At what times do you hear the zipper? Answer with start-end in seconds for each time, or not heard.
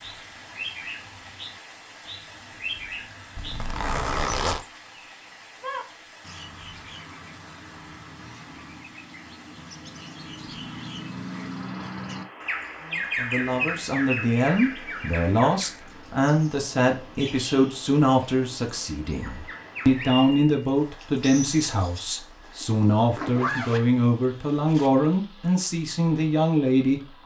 3.4-4.6, 22.4-24.9.